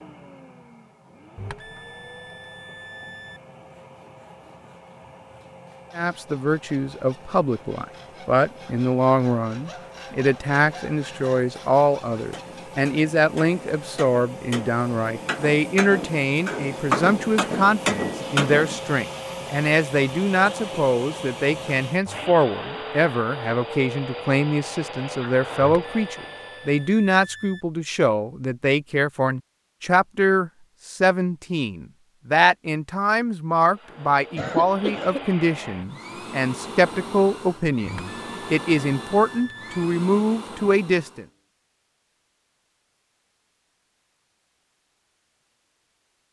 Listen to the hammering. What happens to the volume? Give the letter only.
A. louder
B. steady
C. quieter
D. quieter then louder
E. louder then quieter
A.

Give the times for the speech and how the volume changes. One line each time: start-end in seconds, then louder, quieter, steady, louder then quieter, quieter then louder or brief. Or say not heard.
6.0-41.2 steady.